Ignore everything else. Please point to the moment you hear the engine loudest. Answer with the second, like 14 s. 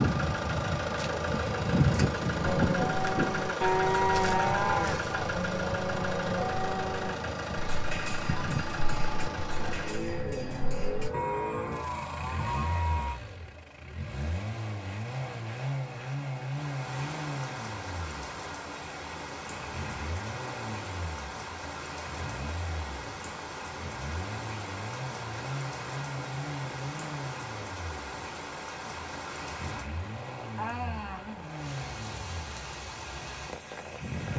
2 s.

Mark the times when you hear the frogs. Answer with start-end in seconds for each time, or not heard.
not heard.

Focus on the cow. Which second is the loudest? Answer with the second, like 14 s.
4 s.